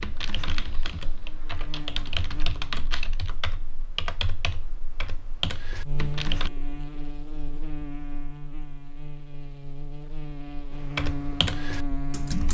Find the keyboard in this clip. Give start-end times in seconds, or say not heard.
0.0-6.5, 10.8-12.4.